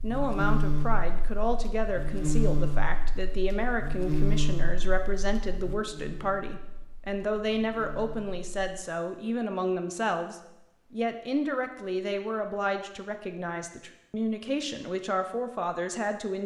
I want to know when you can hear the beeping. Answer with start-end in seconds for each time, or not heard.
not heard.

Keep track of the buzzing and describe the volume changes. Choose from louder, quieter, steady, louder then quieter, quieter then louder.
quieter.